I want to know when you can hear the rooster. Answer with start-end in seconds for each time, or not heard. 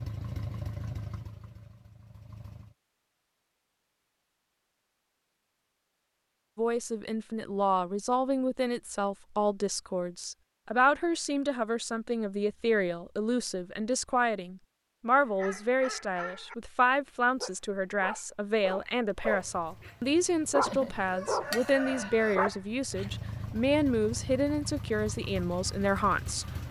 20.6-22.4.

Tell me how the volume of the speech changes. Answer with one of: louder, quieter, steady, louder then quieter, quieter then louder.
steady.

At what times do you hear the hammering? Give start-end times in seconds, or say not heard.
not heard.